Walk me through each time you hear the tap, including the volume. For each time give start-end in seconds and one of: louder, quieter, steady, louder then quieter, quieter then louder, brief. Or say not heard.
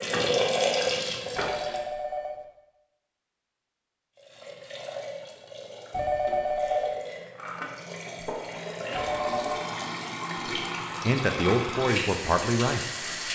0.0-1.8 brief
4.2-13.3 louder.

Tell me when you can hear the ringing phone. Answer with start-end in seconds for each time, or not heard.
1.4-2.4, 5.9-7.0, 8.9-9.7.